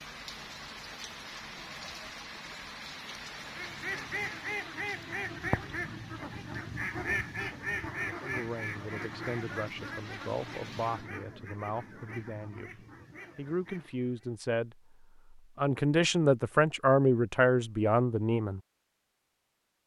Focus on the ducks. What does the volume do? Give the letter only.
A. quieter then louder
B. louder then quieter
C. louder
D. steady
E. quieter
E.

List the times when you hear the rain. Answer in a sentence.
The rain can be heard from 0.0 to 11.1 s.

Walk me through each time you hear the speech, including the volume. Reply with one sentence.
You can hear the speech from 8.2 to 18.6 s, getting louder.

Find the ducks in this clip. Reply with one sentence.
The ducks can be heard from 3.4 to 14.3 s.